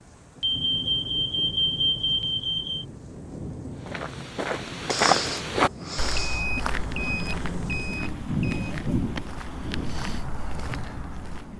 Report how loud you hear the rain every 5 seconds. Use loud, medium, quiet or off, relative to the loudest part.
medium, loud, medium.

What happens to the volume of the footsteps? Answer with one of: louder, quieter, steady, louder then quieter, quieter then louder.
quieter.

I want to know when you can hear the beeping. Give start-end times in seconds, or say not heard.
0.4-2.9, 6.2-8.7.